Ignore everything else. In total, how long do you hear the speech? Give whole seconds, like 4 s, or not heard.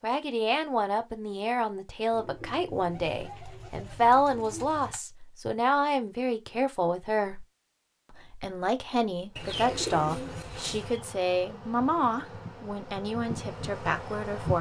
14 s.